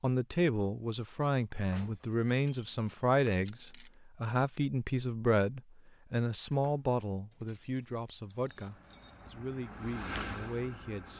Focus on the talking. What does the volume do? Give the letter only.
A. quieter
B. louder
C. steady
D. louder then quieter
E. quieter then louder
A.